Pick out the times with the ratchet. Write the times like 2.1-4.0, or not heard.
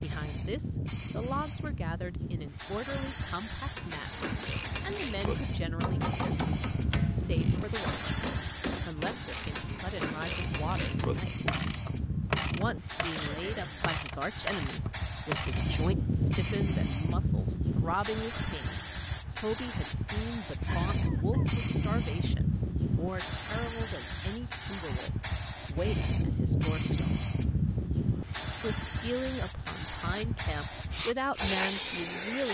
3.8-15.7.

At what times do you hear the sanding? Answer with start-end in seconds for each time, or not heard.
not heard.